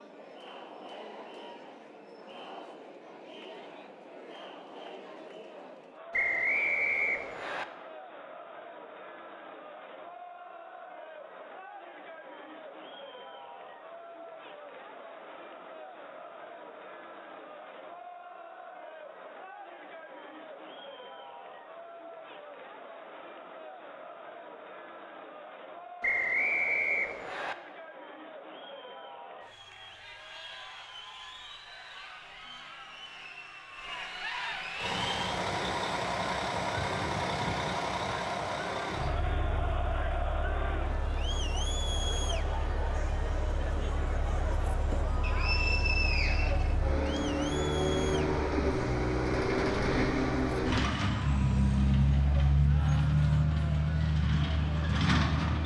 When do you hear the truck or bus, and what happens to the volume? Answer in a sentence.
You can hear the truck or bus from 34.8 to 55.6 s, getting quieter then louder.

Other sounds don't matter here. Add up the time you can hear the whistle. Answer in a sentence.
The whistle can be heard for 5 seconds in total.